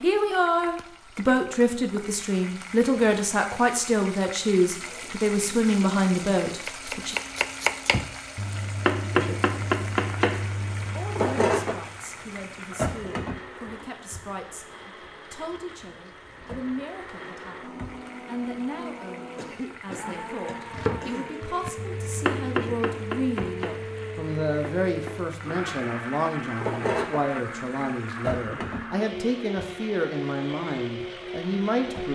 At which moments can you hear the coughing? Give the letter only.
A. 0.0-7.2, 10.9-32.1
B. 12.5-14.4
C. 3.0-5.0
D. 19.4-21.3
D.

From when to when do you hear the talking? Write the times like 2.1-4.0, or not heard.
0.0-7.2, 10.9-32.1.